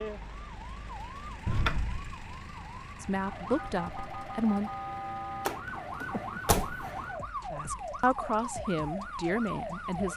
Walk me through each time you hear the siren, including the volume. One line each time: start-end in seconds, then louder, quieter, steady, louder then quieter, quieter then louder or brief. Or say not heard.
0.0-10.1 louder.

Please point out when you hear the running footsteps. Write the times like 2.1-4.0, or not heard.
not heard.